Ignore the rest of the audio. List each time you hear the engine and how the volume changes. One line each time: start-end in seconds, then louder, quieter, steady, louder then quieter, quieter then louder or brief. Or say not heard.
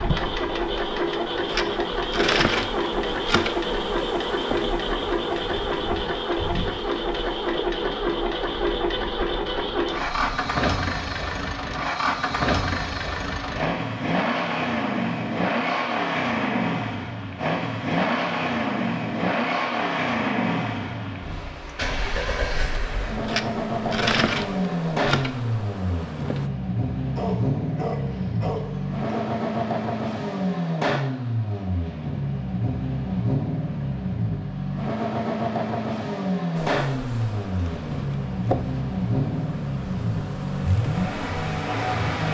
0.0-42.2 steady.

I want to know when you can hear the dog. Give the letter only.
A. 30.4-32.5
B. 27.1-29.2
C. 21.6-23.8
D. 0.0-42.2
B.